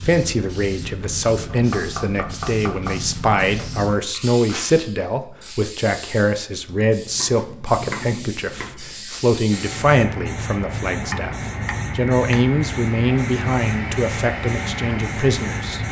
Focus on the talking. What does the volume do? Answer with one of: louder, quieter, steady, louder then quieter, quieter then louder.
steady.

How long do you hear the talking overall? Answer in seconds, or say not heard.
16 s.